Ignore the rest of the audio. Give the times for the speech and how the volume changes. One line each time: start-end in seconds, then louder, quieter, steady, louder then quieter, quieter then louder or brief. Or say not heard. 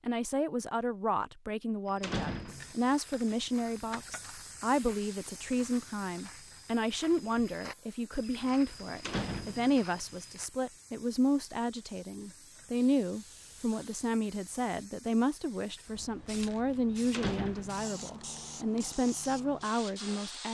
0.1-20.4 steady.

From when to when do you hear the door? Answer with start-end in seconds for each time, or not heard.
2.0-2.8, 9.0-9.8, 17.1-17.9.